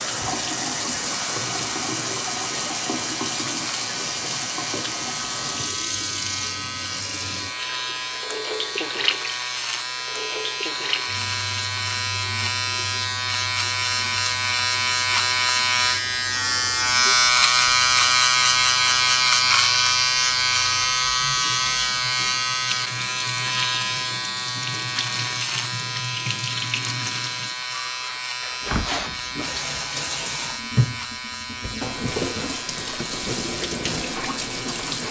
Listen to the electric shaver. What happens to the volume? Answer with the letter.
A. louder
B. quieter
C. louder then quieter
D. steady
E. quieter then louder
C.